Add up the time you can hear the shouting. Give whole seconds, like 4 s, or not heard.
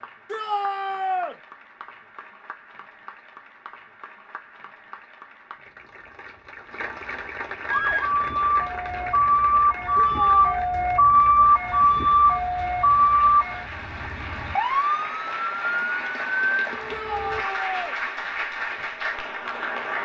3 s.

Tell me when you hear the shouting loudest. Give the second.
1 s.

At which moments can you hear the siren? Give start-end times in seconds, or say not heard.
7.7-17.4.